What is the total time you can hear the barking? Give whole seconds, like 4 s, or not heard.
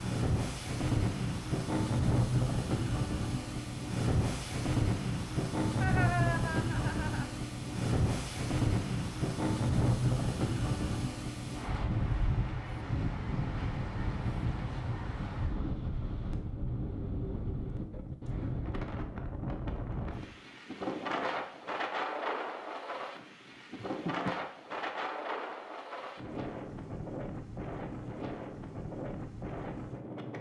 not heard.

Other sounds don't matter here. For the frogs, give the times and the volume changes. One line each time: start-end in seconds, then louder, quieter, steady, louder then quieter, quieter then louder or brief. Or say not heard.
not heard.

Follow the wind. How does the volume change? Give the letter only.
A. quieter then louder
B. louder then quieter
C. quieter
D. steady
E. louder
C.